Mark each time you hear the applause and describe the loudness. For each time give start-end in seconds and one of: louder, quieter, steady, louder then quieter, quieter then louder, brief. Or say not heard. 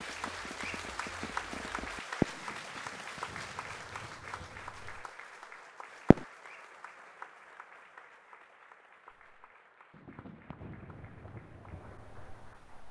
0.0-12.8 quieter.